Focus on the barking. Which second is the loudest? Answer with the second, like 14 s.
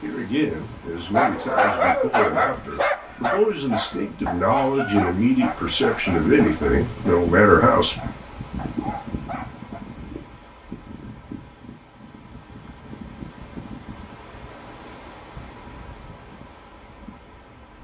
2 s.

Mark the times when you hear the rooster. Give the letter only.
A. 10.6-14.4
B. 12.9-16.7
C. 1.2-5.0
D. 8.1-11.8
C.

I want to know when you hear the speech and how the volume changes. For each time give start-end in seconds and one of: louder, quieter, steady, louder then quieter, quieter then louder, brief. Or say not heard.
0.0-8.0 louder.